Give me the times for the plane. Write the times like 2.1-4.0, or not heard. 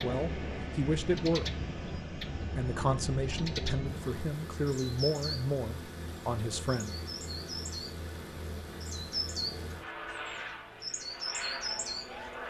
0.0-12.4.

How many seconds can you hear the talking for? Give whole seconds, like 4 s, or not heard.
6 s.